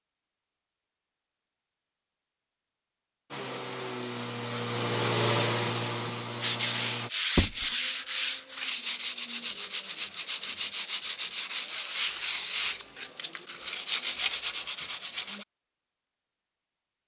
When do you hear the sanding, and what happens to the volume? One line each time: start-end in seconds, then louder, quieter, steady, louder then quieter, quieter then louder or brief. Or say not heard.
6.4-15.4 steady.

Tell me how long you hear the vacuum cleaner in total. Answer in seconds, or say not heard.
4 s.